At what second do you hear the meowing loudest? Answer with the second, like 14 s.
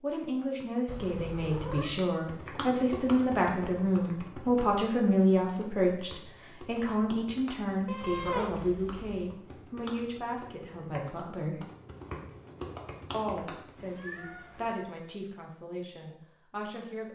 8 s.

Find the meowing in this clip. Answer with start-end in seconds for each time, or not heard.
0.8-2.0, 7.8-9.2, 13.8-14.8.